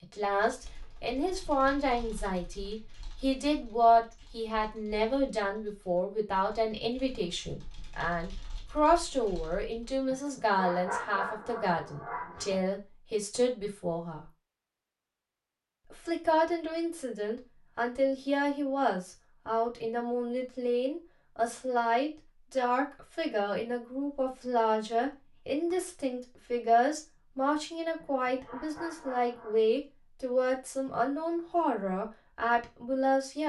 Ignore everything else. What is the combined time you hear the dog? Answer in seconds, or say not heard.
4 s.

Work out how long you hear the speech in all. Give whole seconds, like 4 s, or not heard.
32 s.